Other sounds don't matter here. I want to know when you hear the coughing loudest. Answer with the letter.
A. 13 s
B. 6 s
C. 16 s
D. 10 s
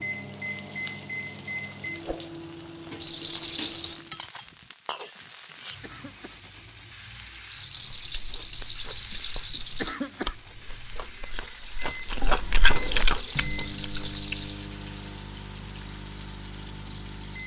D.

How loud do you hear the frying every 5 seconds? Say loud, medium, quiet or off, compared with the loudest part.
loud, loud, loud, medium.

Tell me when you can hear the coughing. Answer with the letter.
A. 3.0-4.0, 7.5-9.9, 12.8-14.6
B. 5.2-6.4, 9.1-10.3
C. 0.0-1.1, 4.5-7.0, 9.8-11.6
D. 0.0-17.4
B.